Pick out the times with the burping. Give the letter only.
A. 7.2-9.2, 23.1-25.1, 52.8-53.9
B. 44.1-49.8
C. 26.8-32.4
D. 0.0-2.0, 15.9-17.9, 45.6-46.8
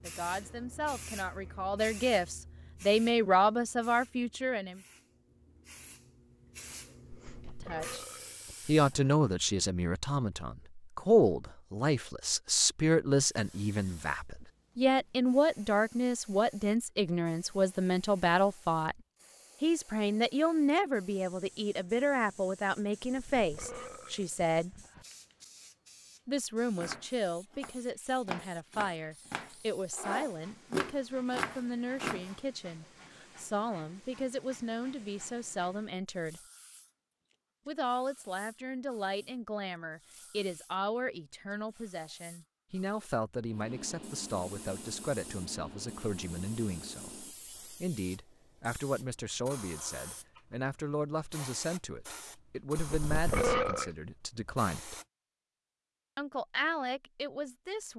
A.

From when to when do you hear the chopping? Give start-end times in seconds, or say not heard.
26.8-32.4.